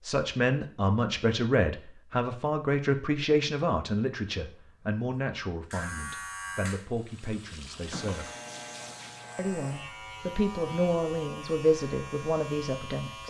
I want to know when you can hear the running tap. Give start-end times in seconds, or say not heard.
6.8-9.4.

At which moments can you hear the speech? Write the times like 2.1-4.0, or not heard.
0.0-8.3, 9.3-13.2.